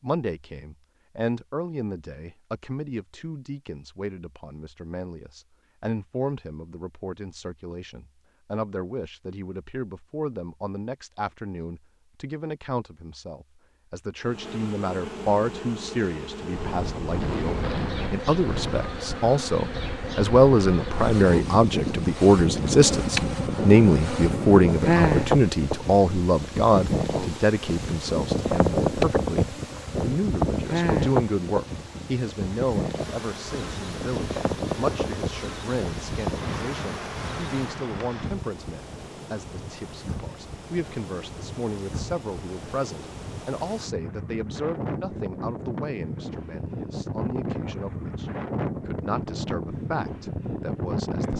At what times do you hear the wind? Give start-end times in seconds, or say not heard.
16.5-51.3.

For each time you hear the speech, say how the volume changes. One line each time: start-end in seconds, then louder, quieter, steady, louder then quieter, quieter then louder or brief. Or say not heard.
0.0-51.3 louder then quieter.